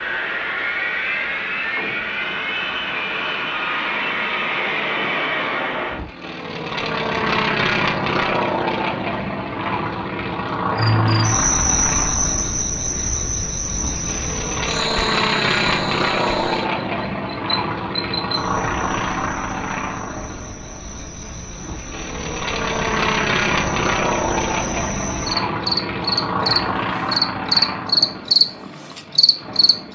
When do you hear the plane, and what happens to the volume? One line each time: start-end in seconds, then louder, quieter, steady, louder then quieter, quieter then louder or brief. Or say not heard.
0.0-29.8 steady.